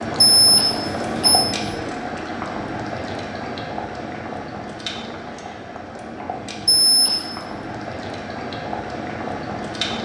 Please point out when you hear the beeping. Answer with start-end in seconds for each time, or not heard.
0.3-1.4, 6.7-7.2.